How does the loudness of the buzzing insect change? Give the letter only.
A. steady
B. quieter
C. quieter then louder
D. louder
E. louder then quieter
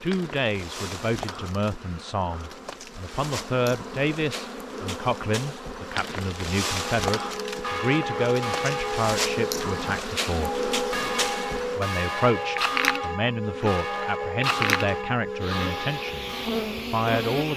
D.